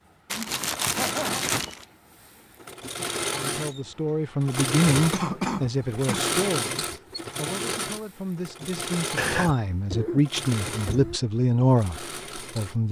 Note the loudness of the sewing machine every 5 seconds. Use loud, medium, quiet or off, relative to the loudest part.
loud, loud, medium.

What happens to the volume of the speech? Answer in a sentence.
The loudness of the speech goes down, then up.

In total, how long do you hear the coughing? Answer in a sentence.
The coughing can be heard for 4 seconds in total.